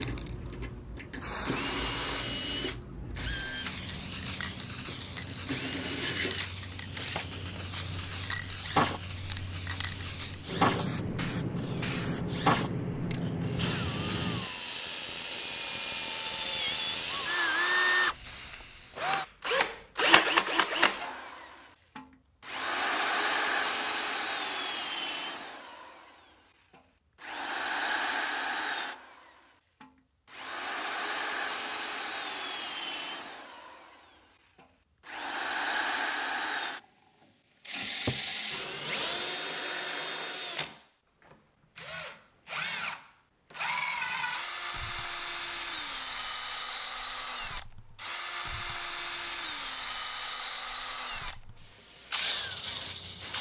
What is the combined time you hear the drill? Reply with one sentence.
The drill can be heard for 53 seconds in total.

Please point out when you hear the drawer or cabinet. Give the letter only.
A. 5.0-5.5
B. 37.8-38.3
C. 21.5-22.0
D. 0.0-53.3
B.